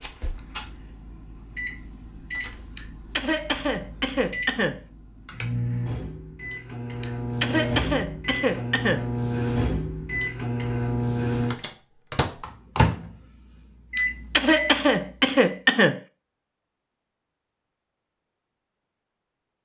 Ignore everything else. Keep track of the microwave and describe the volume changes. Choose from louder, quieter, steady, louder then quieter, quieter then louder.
louder.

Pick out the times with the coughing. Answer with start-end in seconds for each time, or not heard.
2.8-4.8, 7.0-9.1, 13.9-16.0.